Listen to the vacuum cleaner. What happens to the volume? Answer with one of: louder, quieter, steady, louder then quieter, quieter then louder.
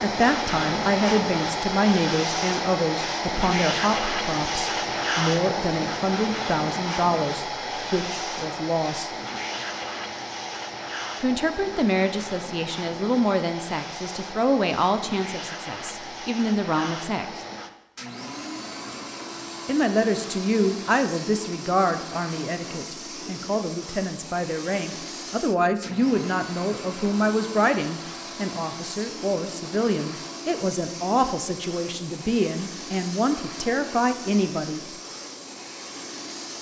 quieter.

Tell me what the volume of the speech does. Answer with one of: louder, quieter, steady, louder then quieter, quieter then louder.
steady.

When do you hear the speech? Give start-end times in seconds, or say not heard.
0.0-9.1, 11.2-17.4, 19.6-34.8.